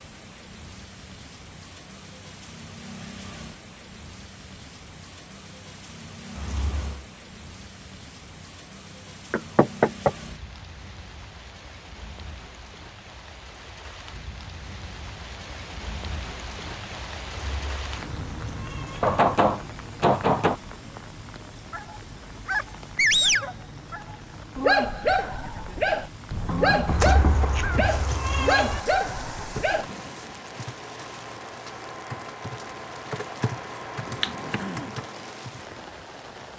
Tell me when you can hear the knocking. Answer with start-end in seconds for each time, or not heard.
9.3-10.1, 19.0-20.6, 26.3-28.1.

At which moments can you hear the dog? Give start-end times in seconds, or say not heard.
21.7-29.9.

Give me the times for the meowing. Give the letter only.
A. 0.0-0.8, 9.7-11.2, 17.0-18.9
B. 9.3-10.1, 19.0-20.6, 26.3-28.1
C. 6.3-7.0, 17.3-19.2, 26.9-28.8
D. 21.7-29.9
C.